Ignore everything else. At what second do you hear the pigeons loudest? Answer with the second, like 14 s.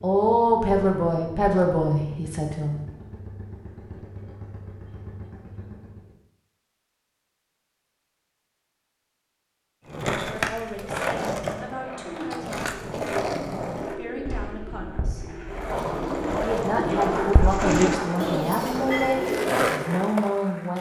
18 s.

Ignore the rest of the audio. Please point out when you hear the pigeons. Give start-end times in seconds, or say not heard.
12.7-20.1.